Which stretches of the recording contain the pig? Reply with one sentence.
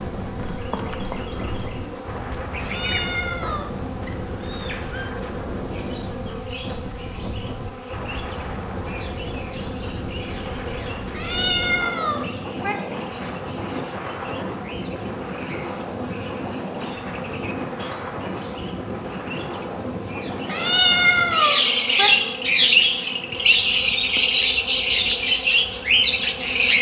The pig can't be heard in this clip.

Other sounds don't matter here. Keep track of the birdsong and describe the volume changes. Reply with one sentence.
The loudness of the birdsong goes down, then up.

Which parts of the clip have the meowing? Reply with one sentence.
The meowing can be heard from 2.5 to 3.7 s, from 11.1 to 12.8 s and from 20.4 to 22.1 s.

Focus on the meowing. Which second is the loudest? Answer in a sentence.
The loudest moment of the meowing is at 21 seconds.